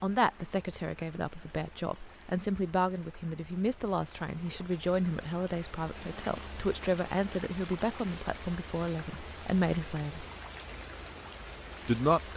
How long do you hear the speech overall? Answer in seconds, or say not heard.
11 s.